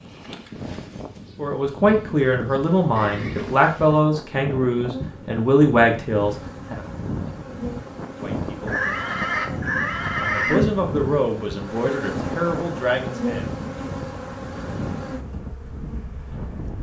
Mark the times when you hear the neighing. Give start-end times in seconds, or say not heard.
3.0-3.7, 8.7-10.6.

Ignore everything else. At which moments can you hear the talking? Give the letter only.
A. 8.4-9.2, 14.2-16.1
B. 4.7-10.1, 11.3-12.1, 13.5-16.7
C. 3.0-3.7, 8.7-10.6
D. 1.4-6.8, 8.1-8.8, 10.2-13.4
D.